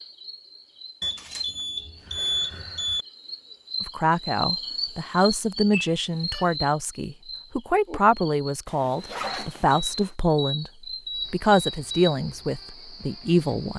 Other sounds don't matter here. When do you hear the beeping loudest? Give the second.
2 s.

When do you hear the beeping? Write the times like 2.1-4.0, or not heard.
1.0-3.0, 5.7-6.5, 9.7-12.2.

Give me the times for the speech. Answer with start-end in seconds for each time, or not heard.
3.8-13.7.